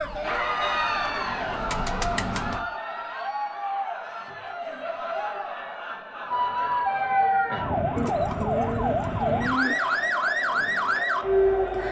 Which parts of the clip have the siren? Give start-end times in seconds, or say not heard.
0.0-2.6, 6.3-11.8.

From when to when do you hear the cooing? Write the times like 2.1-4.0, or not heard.
0.8-2.6, 8.0-9.9.